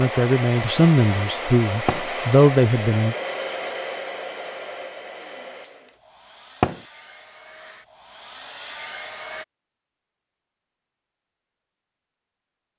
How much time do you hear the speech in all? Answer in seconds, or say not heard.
3 s.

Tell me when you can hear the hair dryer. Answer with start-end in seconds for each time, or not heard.
0.0-9.4.